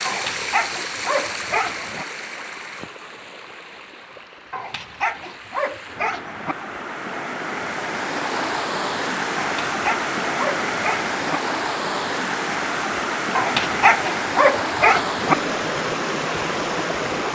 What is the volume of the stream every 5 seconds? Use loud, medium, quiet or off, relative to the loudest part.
medium, loud, loud, loud.